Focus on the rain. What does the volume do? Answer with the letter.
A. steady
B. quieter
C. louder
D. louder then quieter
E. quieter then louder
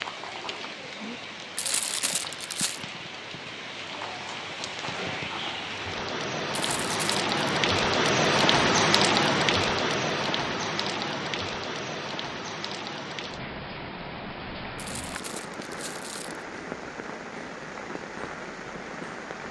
D.